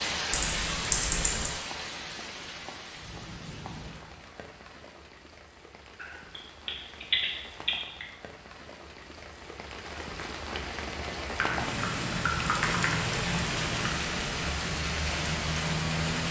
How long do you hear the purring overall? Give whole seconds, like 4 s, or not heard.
not heard.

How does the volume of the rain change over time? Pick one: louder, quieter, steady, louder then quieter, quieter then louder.
quieter then louder.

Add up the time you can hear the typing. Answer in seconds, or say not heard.
6 s.